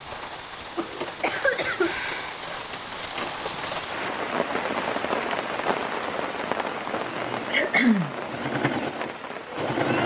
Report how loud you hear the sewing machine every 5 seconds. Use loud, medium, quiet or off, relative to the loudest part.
off, loud.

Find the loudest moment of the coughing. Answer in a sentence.
The loudest moment of the coughing is at 8 seconds.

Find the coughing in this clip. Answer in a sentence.
The coughing can be heard from 0.8 to 1.9 s and from 7.5 to 8.2 s.